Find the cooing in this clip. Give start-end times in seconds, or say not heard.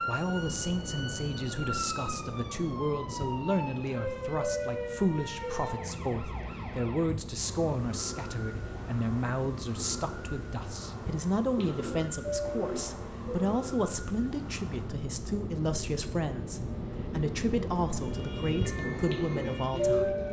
11.5-13.6, 18.7-20.2.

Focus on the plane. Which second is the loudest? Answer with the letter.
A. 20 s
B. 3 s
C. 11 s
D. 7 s
A.